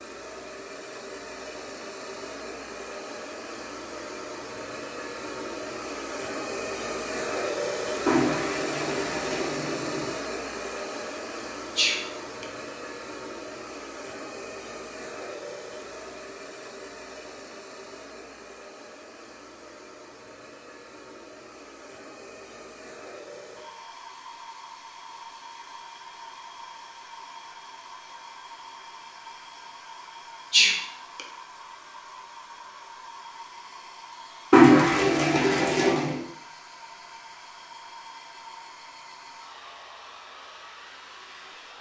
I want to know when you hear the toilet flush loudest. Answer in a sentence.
The loudest moment of the toilet flush is at 35 seconds.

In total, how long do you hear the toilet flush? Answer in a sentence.
The toilet flush can be heard for 4 seconds in total.